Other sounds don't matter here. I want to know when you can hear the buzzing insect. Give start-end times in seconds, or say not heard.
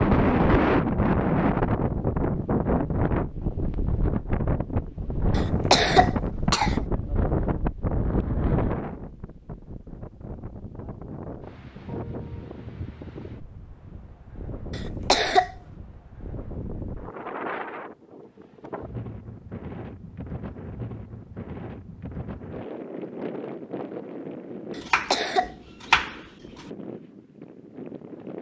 not heard.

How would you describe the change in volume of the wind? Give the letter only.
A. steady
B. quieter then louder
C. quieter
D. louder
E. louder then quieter
C.